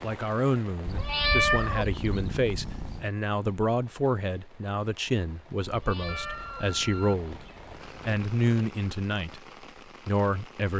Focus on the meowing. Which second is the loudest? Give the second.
1 s.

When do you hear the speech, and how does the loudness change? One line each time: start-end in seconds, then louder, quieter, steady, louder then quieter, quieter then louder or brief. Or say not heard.
0.0-9.4 steady
10.1-10.7 brief.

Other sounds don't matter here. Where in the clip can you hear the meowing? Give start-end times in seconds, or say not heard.
0.8-3.1, 5.6-8.1.